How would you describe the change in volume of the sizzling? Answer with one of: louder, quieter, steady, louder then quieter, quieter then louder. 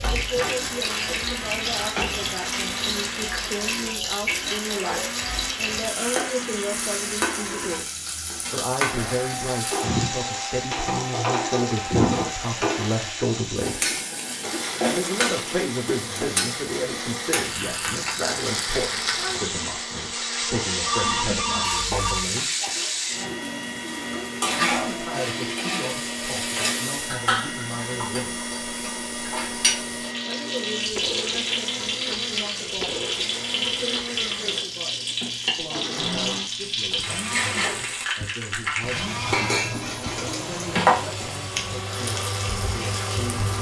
steady.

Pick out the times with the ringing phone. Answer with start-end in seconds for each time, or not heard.
20.6-22.2.